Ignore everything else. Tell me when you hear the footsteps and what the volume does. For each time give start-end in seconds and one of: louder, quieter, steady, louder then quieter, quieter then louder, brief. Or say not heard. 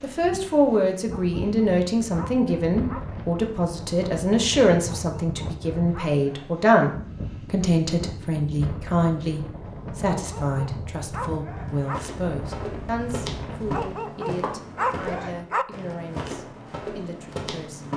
11.6-17.9 steady.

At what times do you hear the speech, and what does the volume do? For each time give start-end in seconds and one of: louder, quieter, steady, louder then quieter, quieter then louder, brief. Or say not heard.
0.0-17.9 quieter.